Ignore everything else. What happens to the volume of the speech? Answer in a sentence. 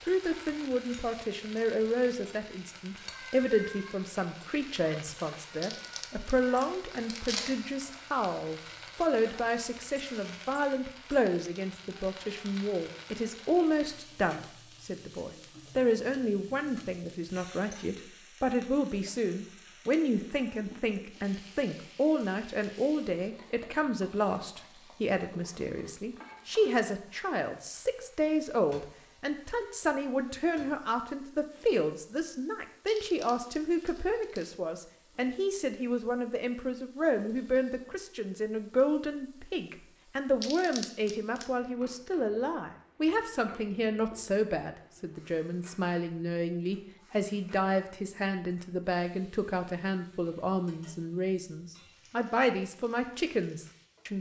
The volume of the speech stays about the same.